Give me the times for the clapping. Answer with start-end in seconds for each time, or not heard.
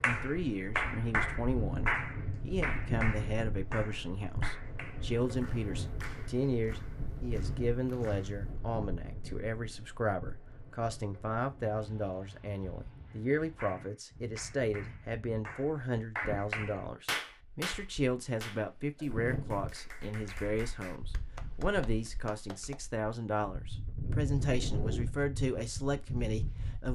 0.0-8.5, 13.1-22.8.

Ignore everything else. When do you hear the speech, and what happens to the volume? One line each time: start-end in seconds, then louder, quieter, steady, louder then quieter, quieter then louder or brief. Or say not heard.
0.0-26.9 steady.